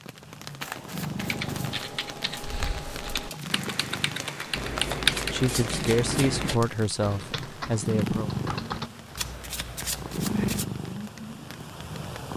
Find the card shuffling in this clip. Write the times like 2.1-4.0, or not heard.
0.6-1.9, 4.5-6.5, 9.2-10.7.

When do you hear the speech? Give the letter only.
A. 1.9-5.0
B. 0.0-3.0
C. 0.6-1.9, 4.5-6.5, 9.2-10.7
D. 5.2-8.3
D.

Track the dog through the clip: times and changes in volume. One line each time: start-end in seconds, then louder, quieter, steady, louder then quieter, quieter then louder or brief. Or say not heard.
not heard.